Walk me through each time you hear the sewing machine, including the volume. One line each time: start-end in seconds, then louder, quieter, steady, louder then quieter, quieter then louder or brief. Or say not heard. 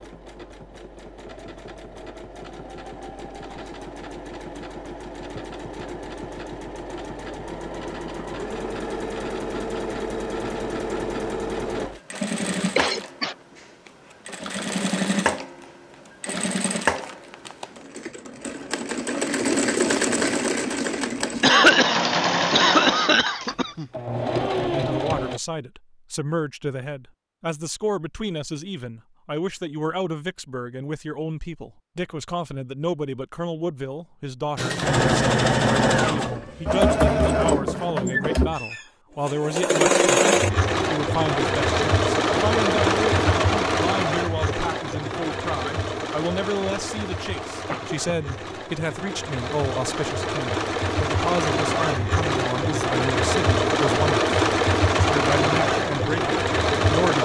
0.0-25.4 louder
34.5-57.1 quieter then louder.